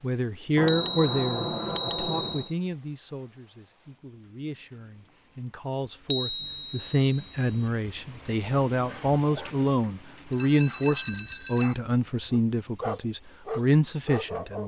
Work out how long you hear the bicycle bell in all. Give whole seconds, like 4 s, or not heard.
5 s.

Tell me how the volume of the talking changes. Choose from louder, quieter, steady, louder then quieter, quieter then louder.
quieter then louder.